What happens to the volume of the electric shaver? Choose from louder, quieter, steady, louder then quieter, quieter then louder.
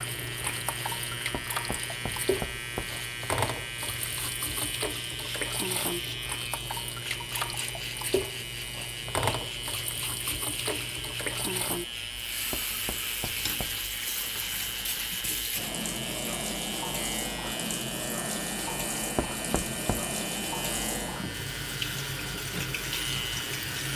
steady.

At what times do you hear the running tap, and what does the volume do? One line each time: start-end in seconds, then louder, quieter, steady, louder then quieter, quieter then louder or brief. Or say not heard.
0.0-23.9 steady.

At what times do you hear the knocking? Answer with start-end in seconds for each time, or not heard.
1.5-3.0, 12.5-13.8, 19.1-20.1.